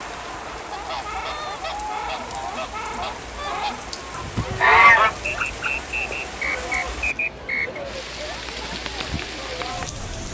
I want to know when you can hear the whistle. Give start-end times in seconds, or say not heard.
5.5-7.8.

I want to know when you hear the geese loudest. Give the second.
5 s.